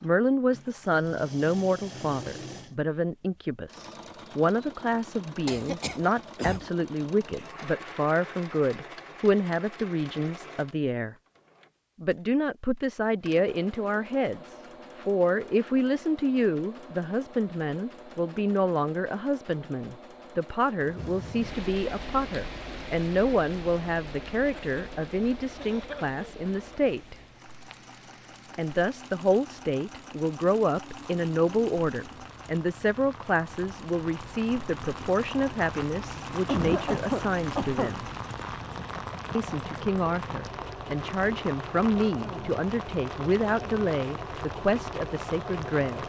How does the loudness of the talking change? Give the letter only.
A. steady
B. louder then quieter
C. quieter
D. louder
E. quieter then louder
A.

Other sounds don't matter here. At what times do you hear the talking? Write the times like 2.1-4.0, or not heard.
0.0-11.2, 12.0-27.1, 28.6-38.0, 39.4-46.0.